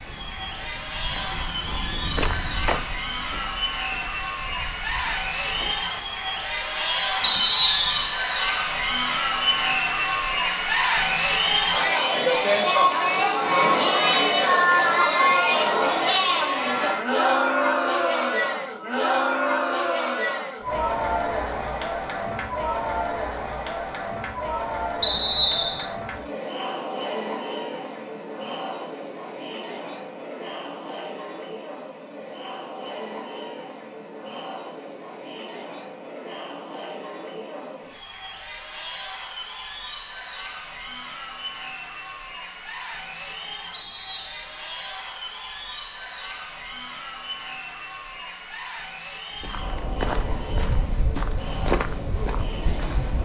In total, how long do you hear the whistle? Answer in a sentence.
The whistle can be heard for 3 seconds in total.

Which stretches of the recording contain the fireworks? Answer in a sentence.
The fireworks can't be heard in this clip.